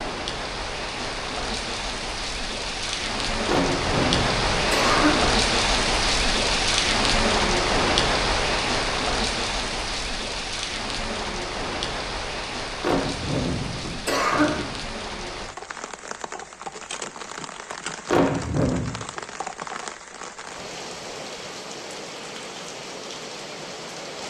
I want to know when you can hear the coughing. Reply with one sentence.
You can hear the coughing from 3.5 to 5.3 s, from 12.8 to 14.7 s and from 18.1 to 18.9 s.